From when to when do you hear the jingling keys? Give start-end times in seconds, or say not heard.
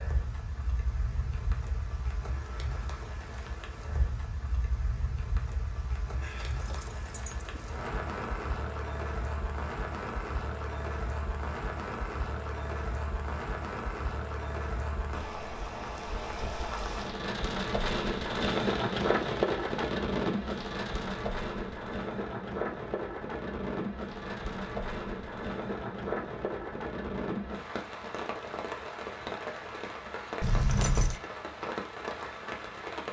6.2-7.7, 30.4-31.2.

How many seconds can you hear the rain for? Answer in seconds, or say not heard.
33 s.